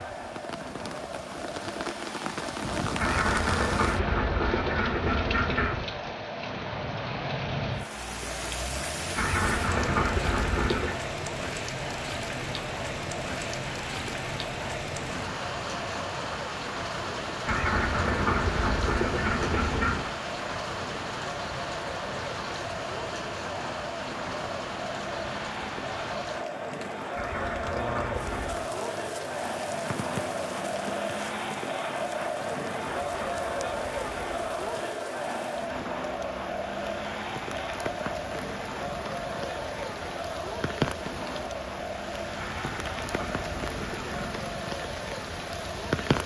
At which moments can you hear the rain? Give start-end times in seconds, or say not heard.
0.0-46.2.